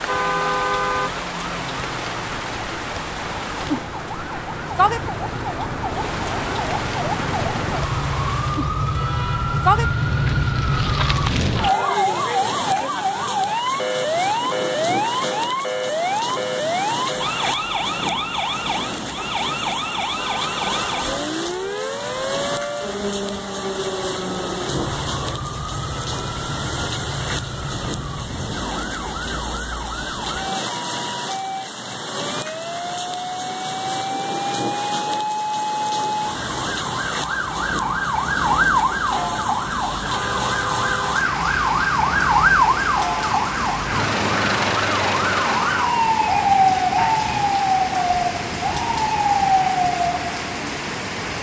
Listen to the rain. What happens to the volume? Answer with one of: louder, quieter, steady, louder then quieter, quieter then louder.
steady.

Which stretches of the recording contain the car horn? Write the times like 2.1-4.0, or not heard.
0.1-1.1, 20.1-21.2, 40.1-41.2.